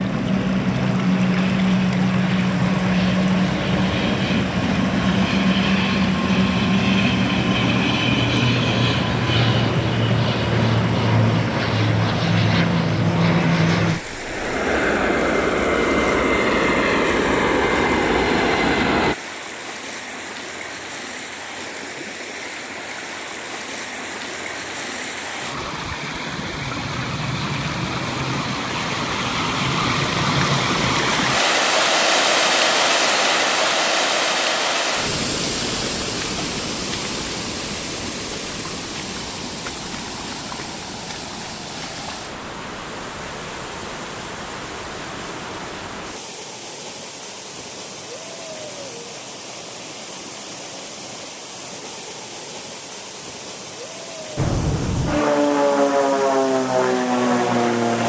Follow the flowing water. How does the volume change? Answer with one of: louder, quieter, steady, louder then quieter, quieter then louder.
louder then quieter.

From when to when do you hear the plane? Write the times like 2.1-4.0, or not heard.
0.0-19.1, 54.4-58.0.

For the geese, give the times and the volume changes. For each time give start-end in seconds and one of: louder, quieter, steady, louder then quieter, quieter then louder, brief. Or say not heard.
not heard.